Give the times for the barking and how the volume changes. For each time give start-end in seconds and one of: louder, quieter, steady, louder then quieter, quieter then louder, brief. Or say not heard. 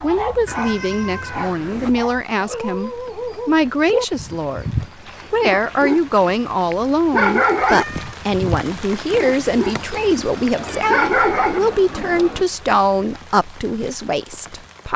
0.0-11.6 louder.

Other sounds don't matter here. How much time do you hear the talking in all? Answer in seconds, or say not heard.
15 s.